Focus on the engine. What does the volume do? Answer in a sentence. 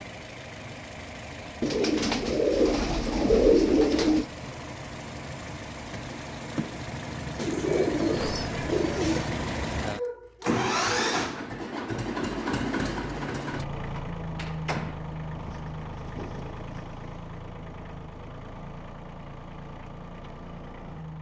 The volume of the engine goes up, then down.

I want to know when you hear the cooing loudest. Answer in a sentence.
The volume of the cooing peaks at 3 seconds.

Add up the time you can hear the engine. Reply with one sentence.
You can hear the engine for 21 seconds altogether.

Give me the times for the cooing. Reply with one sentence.
The cooing can be heard from 1.6 to 4.3 s, from 7.3 to 9.3 s and from 15.3 to 16.9 s.